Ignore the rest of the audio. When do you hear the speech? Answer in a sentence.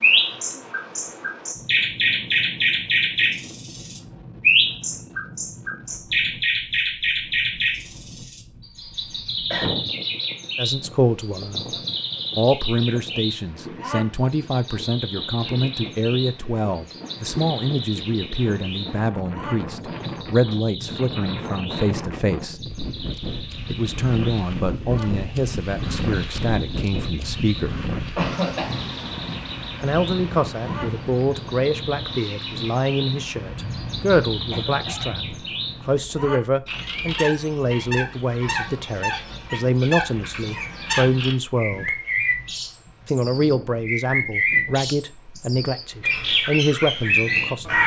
The speech can be heard from 10.6 to 11.8 s, from 12.3 to 22.6 s, from 23.6 to 27.9 s, from 29.8 to 42.0 s and from 43.0 to 47.8 s.